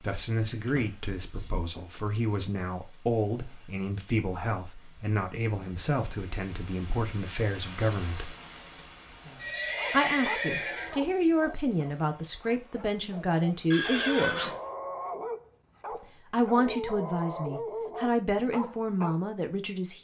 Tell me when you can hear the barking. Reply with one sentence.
The barking can be heard from 9.8 to 19.2 s.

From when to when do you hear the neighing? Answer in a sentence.
You can hear the neighing from 0.5 to 1.5 s, from 9.3 to 10.9 s and from 13.7 to 14.6 s.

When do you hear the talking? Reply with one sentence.
You can hear the talking from 0.0 to 8.3 s, from 9.9 to 14.5 s and from 16.3 to 19.9 s.